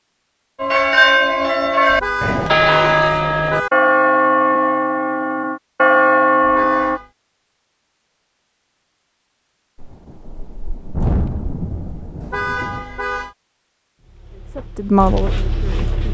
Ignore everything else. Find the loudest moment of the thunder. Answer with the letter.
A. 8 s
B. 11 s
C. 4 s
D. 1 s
B.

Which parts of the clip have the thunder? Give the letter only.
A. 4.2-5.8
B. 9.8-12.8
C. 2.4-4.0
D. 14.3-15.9
B.